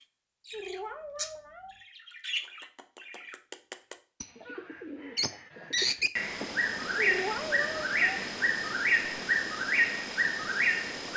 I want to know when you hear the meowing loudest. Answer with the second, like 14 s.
7 s.